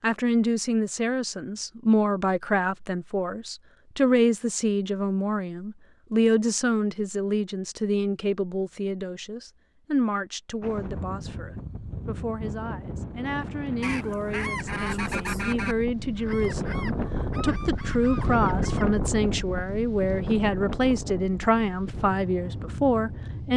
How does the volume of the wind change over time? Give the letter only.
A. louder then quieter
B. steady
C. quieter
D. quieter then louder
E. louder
A.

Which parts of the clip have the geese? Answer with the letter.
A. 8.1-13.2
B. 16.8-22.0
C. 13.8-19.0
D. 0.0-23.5
C.